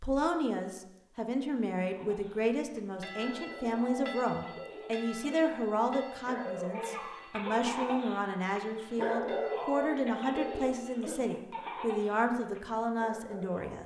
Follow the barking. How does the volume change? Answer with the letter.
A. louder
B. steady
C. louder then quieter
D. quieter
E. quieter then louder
C.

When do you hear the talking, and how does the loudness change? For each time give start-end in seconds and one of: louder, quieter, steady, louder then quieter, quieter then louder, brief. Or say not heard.
0.0-13.8 steady.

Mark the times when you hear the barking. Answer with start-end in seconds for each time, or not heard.
1.9-13.8.